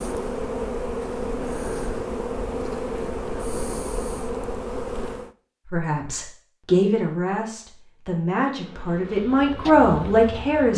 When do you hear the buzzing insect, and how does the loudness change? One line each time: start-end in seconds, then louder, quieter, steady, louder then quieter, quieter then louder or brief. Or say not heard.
0.0-5.3 steady
8.4-10.7 brief.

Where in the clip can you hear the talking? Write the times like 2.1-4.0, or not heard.
5.7-10.7.